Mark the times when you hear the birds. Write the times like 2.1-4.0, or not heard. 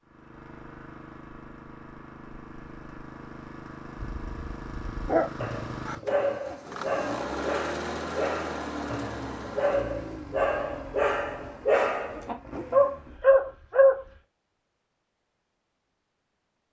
not heard.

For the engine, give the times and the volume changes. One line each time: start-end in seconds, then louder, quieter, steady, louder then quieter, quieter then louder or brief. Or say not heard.
0.0-13.2 louder then quieter.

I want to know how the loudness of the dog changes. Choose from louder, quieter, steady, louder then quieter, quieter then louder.
louder.